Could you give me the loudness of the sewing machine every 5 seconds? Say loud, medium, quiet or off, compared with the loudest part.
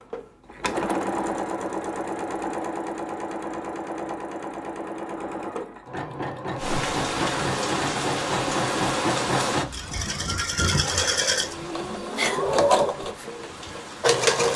medium, medium, loud.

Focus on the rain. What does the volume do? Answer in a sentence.
The volume of the rain goes down.